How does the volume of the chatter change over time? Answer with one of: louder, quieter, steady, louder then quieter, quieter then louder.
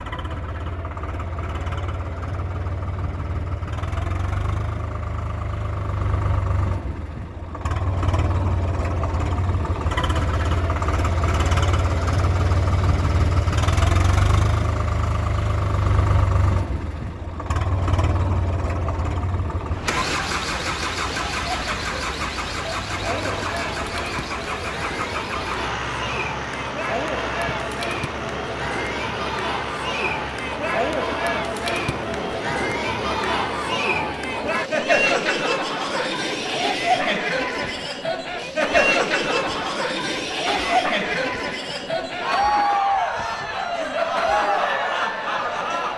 louder.